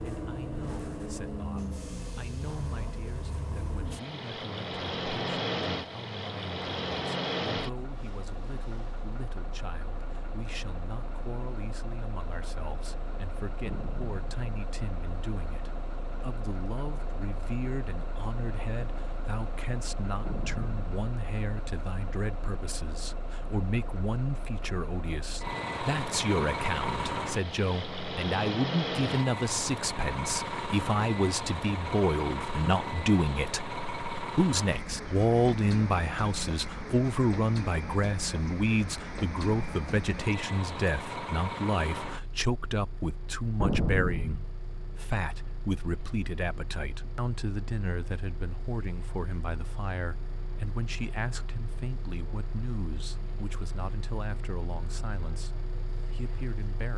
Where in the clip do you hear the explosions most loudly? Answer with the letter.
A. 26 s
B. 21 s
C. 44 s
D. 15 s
C.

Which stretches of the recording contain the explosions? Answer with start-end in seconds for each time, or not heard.
13.7-14.4, 20.2-20.9, 43.6-44.5.